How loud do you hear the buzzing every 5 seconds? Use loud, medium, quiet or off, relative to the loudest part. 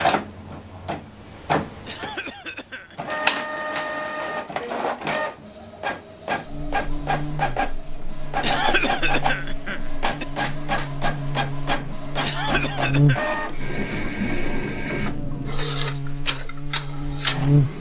off, medium, loud, loud.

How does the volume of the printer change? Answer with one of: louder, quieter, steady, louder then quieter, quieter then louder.
steady.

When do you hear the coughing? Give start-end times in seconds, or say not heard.
1.9-3.1, 8.4-10.2, 12.2-13.3.